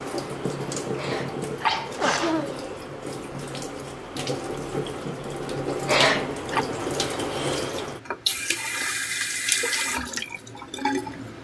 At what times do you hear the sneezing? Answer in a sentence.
The sneezing can be heard from 0.9 to 2.7 s and from 5.8 to 6.7 s.